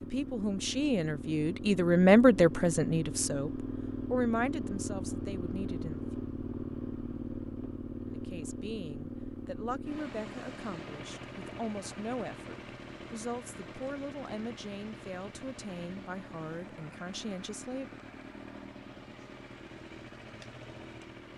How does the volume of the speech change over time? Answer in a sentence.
The volume of the speech goes down.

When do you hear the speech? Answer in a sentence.
You can hear the speech from 0.0 to 6.0 s and from 8.1 to 18.0 s.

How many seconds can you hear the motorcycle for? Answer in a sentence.
The motorcycle can be heard for 21 seconds in total.